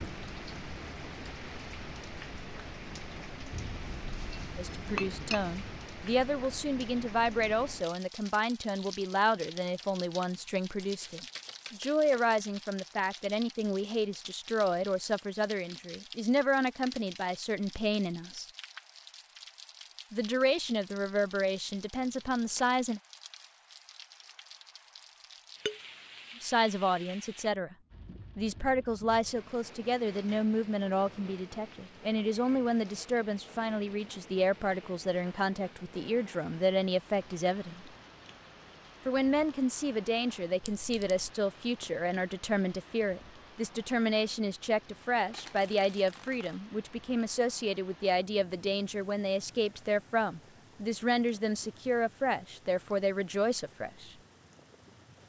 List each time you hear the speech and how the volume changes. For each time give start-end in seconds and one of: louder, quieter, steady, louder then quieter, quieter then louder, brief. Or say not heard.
4.5-18.4 steady
20.1-23.0 brief
26.4-27.8 brief
28.4-37.9 steady
39.0-54.1 steady.